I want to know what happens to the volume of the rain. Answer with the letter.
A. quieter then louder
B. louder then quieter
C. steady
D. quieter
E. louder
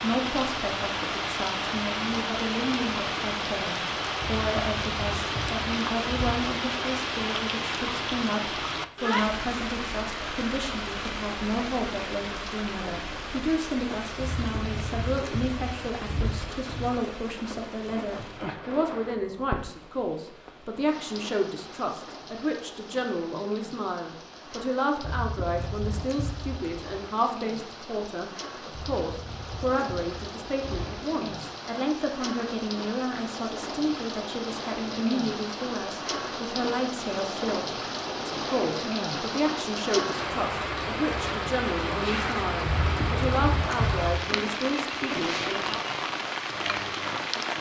A.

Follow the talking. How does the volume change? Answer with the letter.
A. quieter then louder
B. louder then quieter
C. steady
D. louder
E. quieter
C.